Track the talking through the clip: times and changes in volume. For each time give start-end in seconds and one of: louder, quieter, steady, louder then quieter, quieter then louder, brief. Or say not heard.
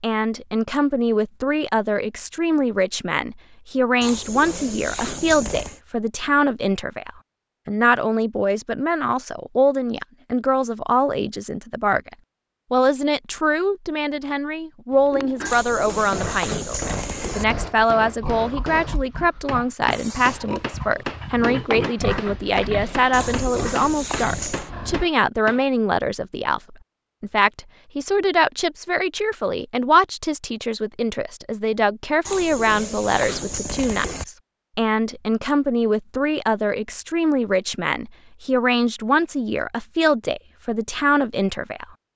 0.0-41.9 steady.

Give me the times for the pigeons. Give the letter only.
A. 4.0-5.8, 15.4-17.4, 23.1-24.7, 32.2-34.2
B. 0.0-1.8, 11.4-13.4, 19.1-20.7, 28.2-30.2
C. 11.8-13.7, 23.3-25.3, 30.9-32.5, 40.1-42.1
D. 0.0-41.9
A.